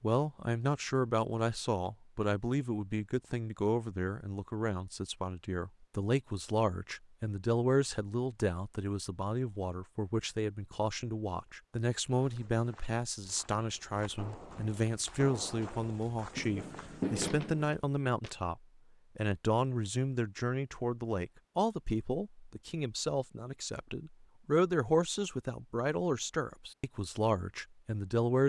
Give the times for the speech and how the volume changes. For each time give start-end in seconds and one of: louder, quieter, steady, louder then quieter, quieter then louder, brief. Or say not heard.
0.0-28.4 steady.